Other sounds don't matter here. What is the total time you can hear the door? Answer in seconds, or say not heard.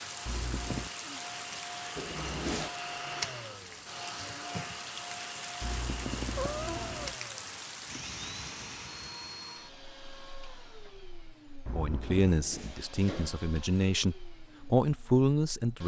2 s.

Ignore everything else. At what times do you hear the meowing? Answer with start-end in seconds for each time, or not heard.
0.2-0.9, 5.6-7.2, 11.7-12.3.